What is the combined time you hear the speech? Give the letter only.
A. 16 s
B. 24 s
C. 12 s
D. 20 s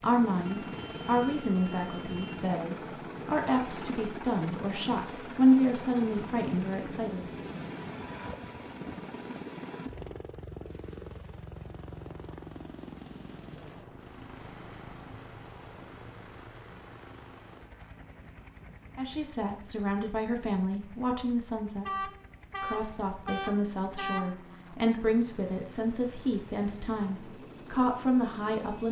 A.